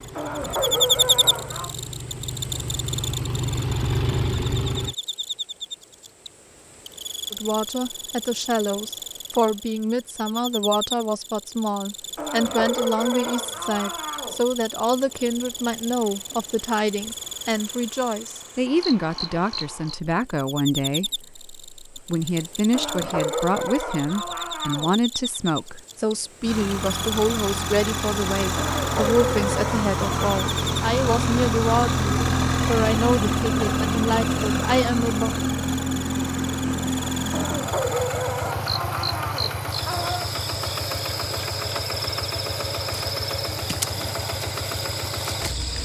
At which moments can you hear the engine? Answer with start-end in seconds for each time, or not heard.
0.0-5.0, 26.4-45.8.